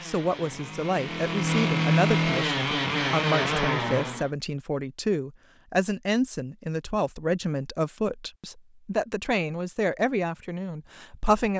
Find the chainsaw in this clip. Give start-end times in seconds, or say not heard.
0.0-4.3.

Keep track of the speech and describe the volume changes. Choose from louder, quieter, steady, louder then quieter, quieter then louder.
steady.